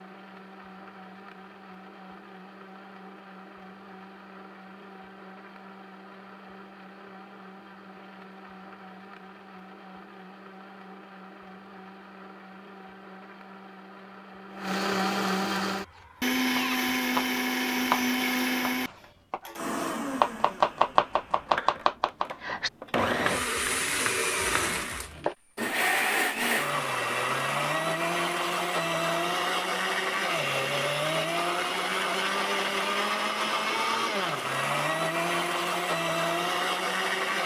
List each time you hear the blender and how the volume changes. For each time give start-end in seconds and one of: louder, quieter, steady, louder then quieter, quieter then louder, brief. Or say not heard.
0.0-37.4 louder.